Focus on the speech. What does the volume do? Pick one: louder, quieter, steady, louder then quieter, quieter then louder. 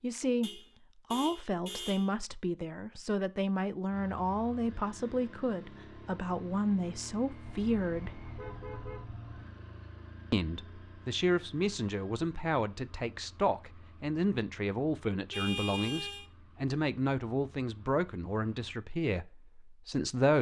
steady.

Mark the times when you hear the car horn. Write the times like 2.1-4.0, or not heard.
0.4-2.1, 7.4-9.4, 15.3-16.2.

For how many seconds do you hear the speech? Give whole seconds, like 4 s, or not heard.
18 s.